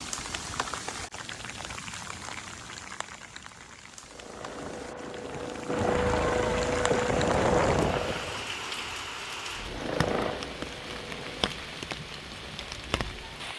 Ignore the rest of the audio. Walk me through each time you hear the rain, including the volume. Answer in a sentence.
The rain can be heard from 0.0 to 13.5 s, getting quieter then louder.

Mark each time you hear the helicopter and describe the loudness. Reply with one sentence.
You can hear the helicopter from 4.0 to 8.5 s, getting louder; and briefly from 9.6 to 11.6 s.